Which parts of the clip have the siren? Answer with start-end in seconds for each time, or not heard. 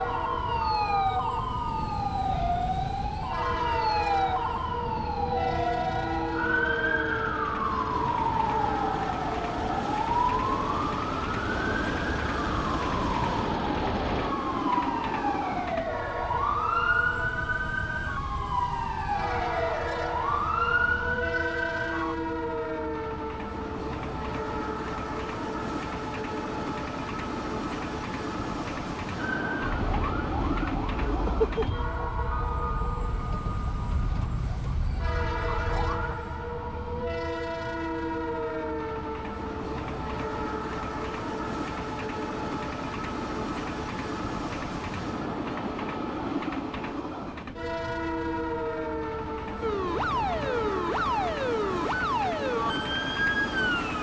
0.0-22.1, 29.1-36.1, 49.6-53.9.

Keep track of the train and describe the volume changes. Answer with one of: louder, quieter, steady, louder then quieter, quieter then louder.
steady.